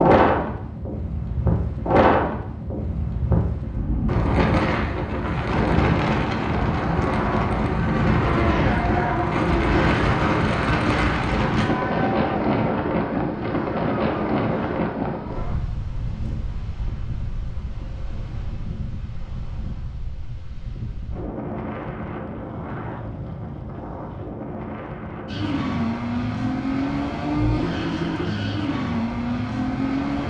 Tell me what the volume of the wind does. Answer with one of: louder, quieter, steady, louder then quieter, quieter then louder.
quieter.